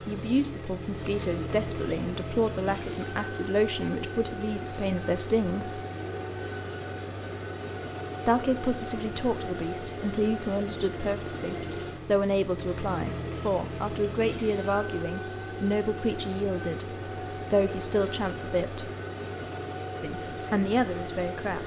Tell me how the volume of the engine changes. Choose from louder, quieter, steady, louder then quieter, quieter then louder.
steady.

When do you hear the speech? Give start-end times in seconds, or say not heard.
0.0-5.8, 8.2-18.9, 20.0-21.6.